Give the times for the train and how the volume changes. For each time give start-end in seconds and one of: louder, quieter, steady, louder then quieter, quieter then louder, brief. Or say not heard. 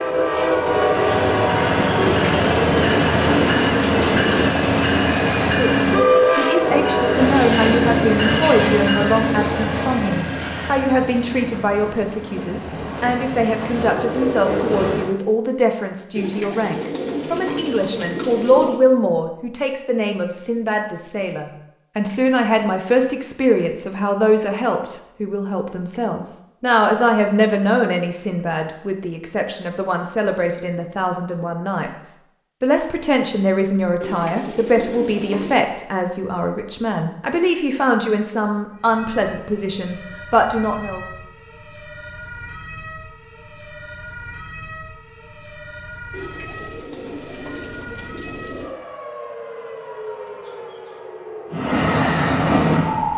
0.0-15.2 quieter
51.5-53.1 brief.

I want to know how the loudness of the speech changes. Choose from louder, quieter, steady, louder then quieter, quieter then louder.
steady.